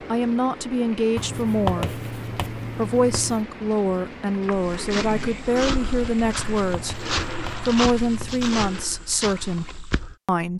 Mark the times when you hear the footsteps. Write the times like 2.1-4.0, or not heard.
4.5-10.2.